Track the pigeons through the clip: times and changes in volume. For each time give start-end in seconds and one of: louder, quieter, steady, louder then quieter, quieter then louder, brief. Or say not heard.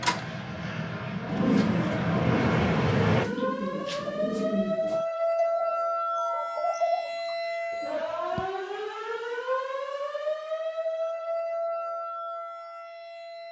1.2-8.4 steady.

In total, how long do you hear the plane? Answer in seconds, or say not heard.
3 s.